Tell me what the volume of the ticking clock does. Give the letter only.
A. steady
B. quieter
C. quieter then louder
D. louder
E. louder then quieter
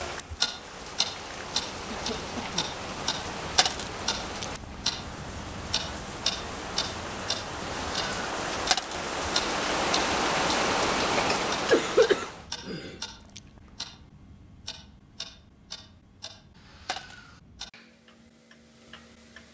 B.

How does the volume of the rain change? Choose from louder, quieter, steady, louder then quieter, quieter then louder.
louder.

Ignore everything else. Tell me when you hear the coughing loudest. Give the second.
12 s.